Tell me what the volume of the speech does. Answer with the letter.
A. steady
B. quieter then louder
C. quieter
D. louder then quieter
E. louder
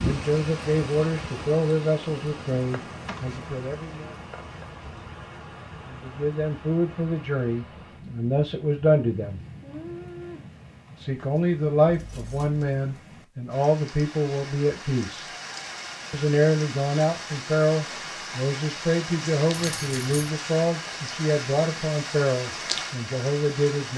A.